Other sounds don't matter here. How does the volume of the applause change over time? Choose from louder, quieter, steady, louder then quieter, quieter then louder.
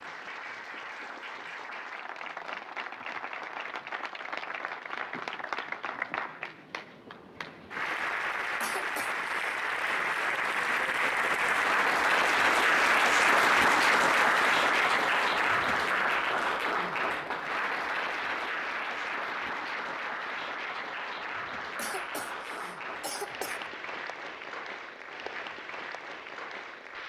louder then quieter.